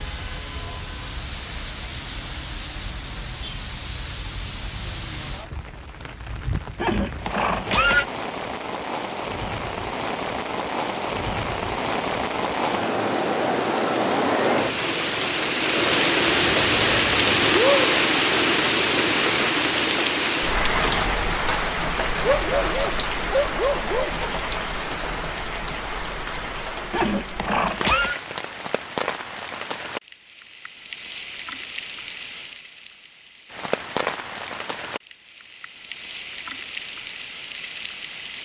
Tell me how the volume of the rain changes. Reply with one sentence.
The volume of the rain goes up, then down.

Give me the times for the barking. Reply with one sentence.
The barking can be heard from 22.2 to 24.4 s.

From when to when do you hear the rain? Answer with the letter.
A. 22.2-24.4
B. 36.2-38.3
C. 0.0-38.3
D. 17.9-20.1
C.